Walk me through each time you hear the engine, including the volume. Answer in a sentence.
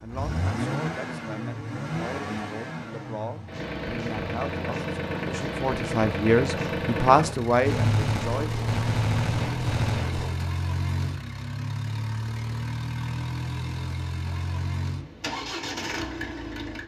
You can hear the engine from 0.0 to 16.8 s, at a steady volume.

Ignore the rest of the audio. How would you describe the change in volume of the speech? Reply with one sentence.
The volume of the speech goes up.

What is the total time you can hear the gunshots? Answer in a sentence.
You can hear the gunshots for 3 seconds altogether.